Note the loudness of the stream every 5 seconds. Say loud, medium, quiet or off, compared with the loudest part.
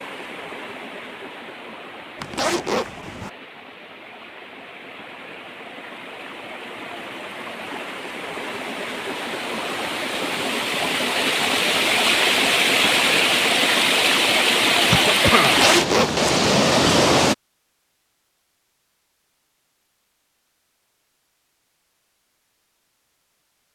quiet, quiet, loud, loud, off.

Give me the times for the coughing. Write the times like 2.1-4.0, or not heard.
14.8-15.7.